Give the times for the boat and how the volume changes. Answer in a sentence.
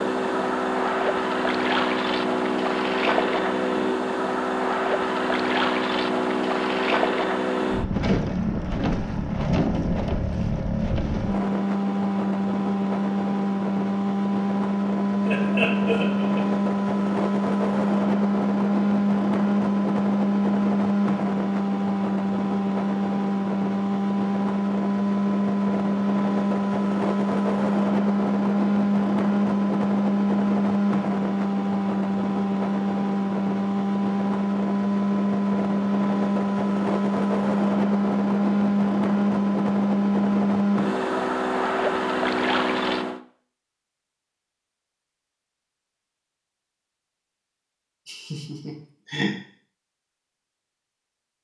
The boat can be heard from 0.0 to 43.2 s, at a steady volume.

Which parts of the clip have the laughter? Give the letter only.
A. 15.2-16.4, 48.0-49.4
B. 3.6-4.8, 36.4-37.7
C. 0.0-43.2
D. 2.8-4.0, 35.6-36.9
A.